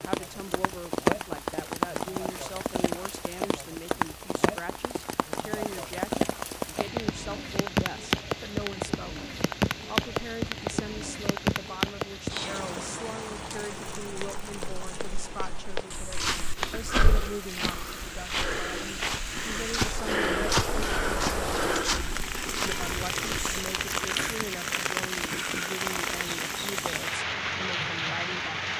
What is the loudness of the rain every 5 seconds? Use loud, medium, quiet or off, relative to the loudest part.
loud, loud, loud, medium, loud, loud.